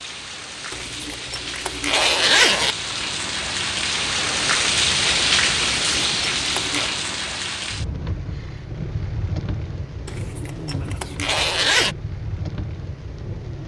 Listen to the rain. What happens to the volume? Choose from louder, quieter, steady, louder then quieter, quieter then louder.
louder then quieter.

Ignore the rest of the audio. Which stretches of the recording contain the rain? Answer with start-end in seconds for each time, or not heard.
0.0-13.6.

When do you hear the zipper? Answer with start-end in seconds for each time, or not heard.
0.7-2.8, 5.7-6.9, 10.1-11.9.